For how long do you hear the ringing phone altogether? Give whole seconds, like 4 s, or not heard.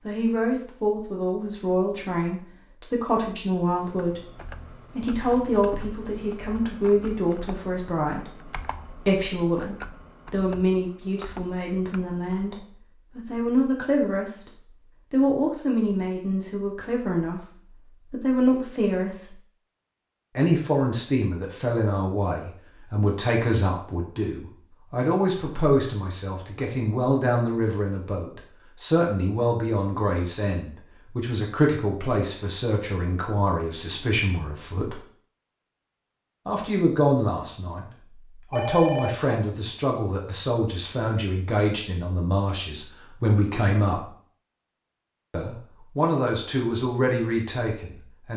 2 s.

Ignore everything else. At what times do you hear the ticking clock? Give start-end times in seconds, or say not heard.
not heard.